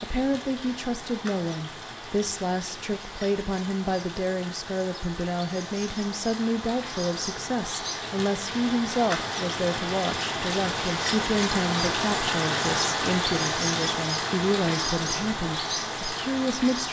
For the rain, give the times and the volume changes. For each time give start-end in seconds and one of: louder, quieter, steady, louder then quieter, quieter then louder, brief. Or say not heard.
0.0-16.8 louder.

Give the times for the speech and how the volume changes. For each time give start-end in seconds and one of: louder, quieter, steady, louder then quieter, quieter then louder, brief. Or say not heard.
0.0-16.8 steady.